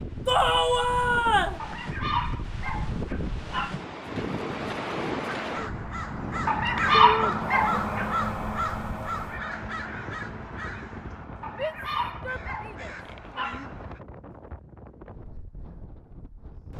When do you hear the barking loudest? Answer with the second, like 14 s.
7 s.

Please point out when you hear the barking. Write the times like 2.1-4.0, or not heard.
1.6-3.8, 6.5-8.1, 11.4-13.7.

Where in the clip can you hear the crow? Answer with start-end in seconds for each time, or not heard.
5.3-14.0.